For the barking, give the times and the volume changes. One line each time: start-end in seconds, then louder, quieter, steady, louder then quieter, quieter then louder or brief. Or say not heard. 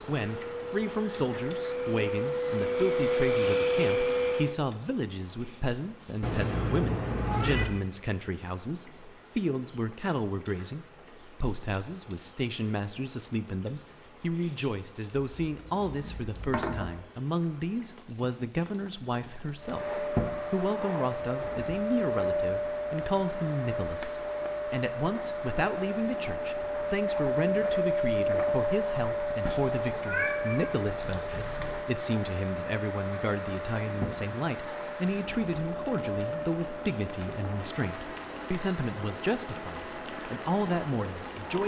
not heard.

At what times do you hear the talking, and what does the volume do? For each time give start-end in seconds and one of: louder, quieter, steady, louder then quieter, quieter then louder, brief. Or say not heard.
0.1-41.6 steady.